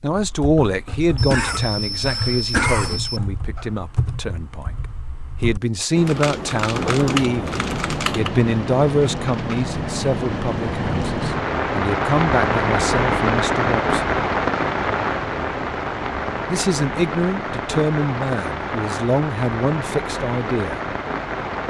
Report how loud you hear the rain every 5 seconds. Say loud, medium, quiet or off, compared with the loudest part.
off, medium, loud, medium, medium.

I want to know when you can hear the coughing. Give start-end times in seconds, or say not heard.
1.1-3.2.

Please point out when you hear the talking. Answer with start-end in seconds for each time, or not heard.
0.0-14.2, 16.5-20.8.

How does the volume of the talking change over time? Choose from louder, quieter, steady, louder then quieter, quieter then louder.
steady.